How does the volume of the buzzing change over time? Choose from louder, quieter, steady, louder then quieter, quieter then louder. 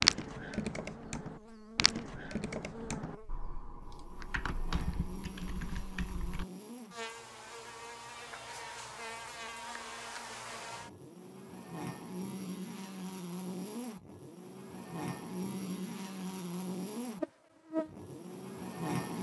louder.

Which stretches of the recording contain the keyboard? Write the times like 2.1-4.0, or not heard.
0.0-6.5.